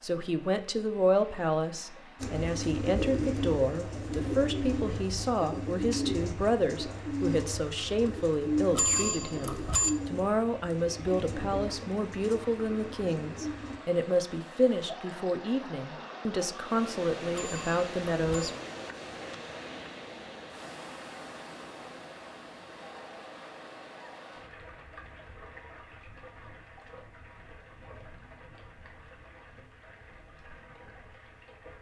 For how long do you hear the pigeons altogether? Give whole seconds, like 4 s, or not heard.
12 s.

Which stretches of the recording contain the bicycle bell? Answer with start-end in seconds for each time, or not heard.
8.7-9.9, 17.3-18.5.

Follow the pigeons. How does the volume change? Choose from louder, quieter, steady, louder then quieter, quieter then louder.
quieter.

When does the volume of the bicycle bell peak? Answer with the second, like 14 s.
9 s.